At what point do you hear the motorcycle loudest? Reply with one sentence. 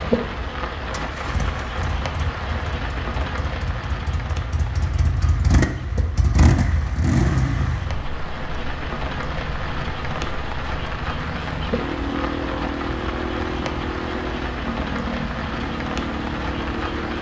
The volume of the motorcycle peaks at 7 seconds.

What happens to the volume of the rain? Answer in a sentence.
The loudness of the rain goes down, then up.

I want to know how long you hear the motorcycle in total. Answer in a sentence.
You can hear the motorcycle for 17 seconds altogether.